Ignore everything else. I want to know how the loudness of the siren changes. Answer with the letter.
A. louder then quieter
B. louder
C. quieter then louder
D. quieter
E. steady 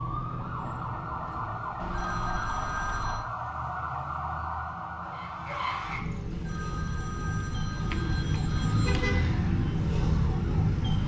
B.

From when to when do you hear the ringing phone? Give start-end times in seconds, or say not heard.
1.8-3.2, 6.3-9.1.